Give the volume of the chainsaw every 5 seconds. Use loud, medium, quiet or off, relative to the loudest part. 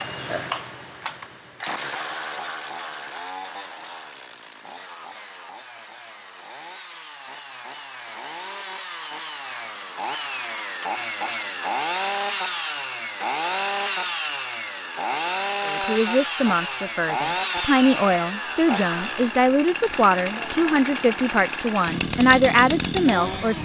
medium, medium, loud, loud, loud.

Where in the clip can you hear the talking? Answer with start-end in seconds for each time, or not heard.
15.7-23.5.